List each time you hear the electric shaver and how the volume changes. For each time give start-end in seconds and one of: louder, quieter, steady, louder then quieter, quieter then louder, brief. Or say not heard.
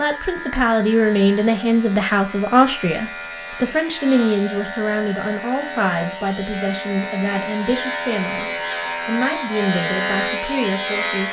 0.0-11.2 louder.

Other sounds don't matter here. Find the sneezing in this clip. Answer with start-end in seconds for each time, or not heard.
not heard.